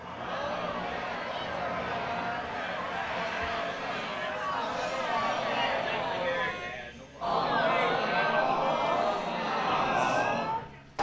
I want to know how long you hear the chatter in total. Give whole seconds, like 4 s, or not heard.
11 s.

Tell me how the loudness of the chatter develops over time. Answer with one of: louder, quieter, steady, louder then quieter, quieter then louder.
louder.